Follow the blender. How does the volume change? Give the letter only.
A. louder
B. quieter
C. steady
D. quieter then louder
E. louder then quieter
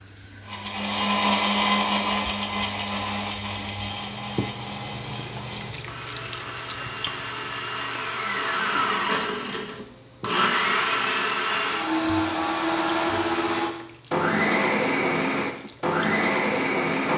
D.